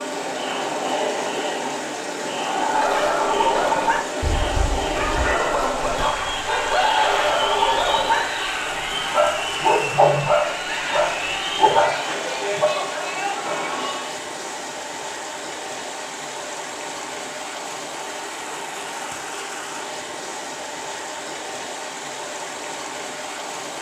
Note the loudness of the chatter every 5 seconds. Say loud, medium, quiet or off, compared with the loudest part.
loud, loud, loud, off, off.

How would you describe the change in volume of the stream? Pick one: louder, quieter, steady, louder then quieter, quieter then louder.
steady.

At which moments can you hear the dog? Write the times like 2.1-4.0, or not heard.
2.5-13.6.